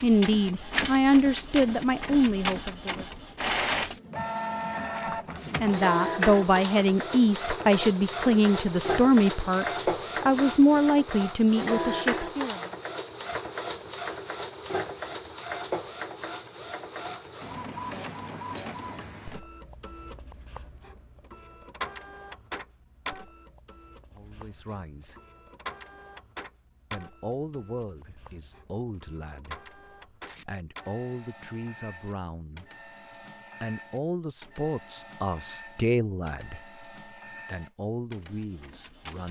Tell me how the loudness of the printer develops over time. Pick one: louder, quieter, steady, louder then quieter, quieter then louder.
quieter.